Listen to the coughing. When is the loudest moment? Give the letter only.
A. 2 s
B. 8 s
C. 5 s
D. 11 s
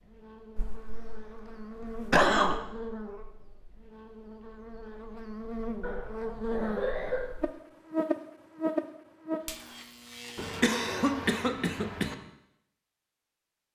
A.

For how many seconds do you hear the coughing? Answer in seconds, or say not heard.
5 s.